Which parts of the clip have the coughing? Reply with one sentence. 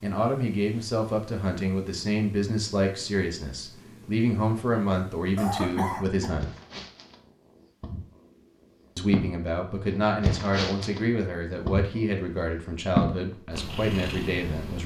You can hear the coughing from 5.3 to 6.3 s.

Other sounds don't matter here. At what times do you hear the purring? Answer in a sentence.
You can hear the purring from 0.0 to 14.8 s.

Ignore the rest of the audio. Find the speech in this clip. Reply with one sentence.
The speech can be heard from 0.0 to 6.5 s and from 8.9 to 14.8 s.